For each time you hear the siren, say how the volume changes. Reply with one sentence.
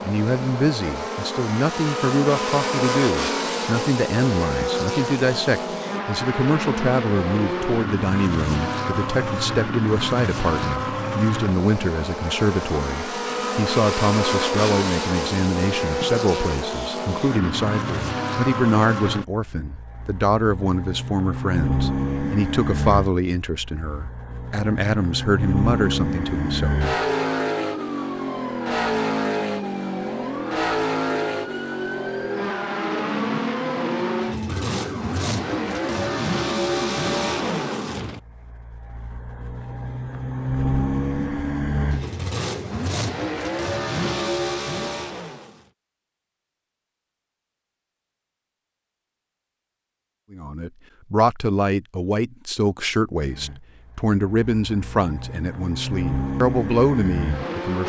The siren can be heard from 26.6 to 38.0 s, at a steady volume.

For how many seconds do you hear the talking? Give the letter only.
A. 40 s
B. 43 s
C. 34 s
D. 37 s
C.